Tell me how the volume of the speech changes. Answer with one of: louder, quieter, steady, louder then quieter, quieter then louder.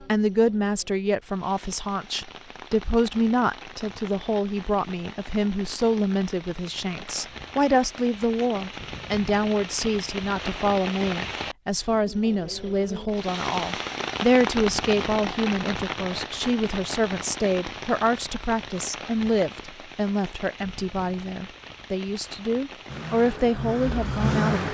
steady.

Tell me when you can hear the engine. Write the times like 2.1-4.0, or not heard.
22.9-24.6.